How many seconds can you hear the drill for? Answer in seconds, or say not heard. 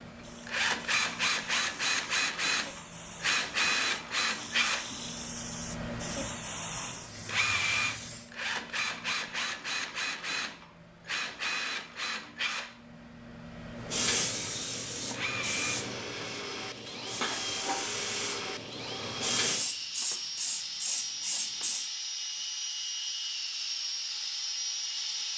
25 s.